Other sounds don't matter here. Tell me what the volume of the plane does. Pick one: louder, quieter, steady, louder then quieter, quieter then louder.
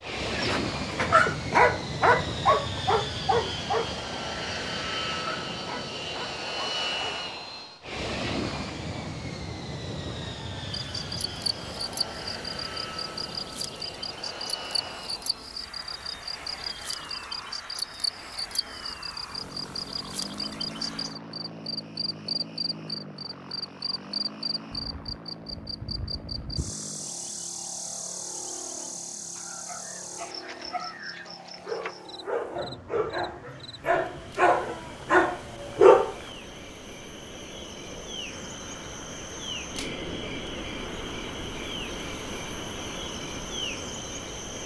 quieter.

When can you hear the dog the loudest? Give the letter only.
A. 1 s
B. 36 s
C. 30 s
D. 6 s
B.